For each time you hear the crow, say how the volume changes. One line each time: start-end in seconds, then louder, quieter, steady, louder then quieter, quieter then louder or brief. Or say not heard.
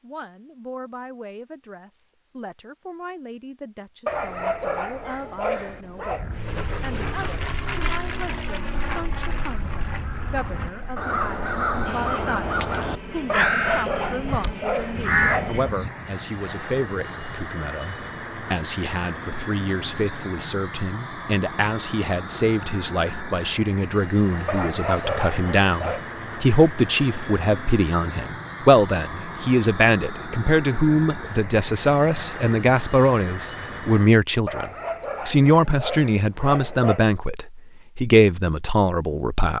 6.0-15.9 louder.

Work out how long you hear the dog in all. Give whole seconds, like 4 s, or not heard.
9 s.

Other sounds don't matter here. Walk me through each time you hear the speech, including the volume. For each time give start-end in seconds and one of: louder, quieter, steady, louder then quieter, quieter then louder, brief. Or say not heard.
0.0-39.5 louder.